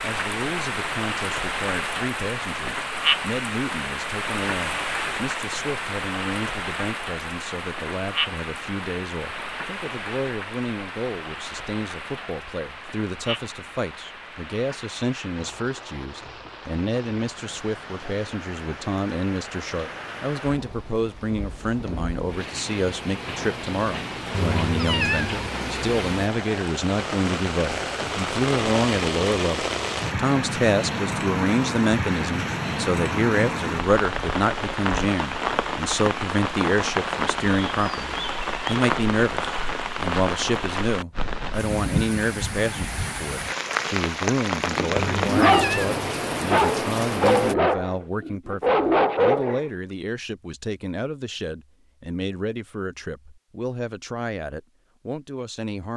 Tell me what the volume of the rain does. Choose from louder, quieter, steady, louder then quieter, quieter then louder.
quieter then louder.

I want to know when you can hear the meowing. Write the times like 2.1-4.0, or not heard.
24.3-25.5, 45.0-46.0.